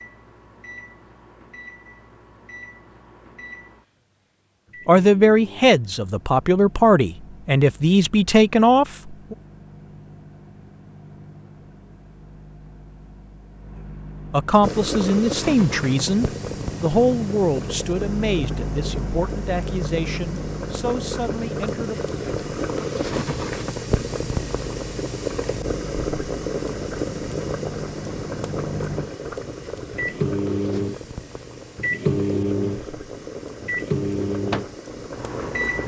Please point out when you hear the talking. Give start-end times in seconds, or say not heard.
4.8-9.3, 14.3-22.0.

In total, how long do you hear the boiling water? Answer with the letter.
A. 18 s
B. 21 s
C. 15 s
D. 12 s
B.